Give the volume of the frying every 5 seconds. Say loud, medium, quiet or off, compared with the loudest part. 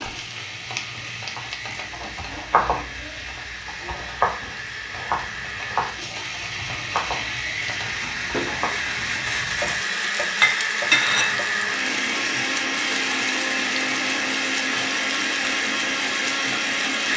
medium, medium, loud, medium.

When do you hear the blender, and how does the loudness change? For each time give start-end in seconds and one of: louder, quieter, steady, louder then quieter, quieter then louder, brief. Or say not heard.
0.0-17.1 louder.